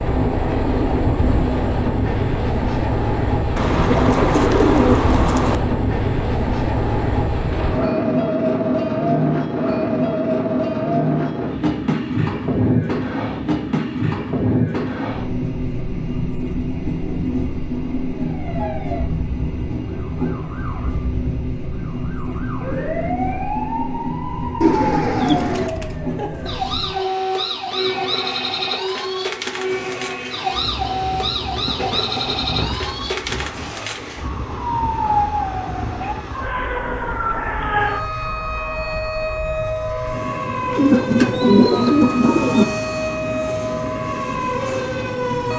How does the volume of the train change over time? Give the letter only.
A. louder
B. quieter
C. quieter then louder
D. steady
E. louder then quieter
B.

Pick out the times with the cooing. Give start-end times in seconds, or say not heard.
3.5-5.5, 24.6-25.7, 40.8-42.6.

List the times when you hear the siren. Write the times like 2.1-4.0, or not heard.
18.1-45.5.